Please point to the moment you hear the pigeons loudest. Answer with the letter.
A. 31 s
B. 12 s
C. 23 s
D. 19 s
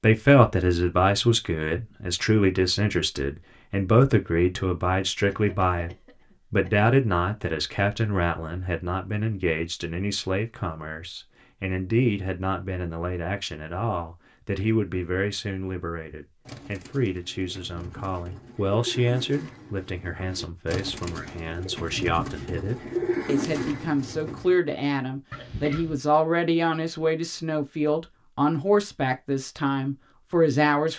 C.